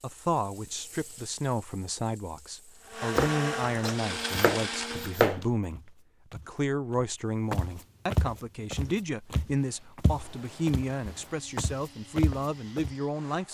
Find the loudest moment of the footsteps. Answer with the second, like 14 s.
8 s.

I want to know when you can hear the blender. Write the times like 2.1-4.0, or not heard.
2.6-5.2, 9.6-13.4.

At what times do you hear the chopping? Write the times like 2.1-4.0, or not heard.
3.1-5.5.